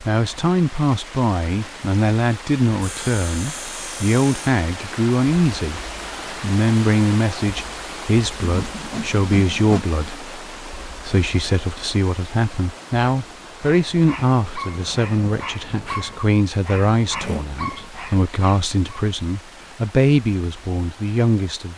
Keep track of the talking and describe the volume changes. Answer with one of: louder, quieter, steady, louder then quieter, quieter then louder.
steady.